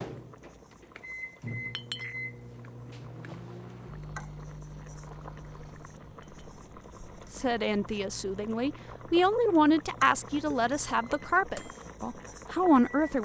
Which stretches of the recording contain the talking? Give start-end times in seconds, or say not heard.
7.3-13.2.